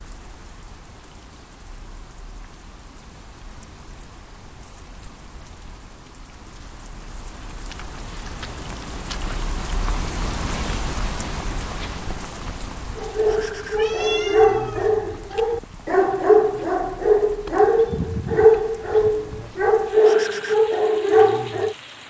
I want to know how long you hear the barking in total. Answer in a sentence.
You can hear the barking for 9 seconds altogether.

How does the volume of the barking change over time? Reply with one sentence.
The volume of the barking stays about the same.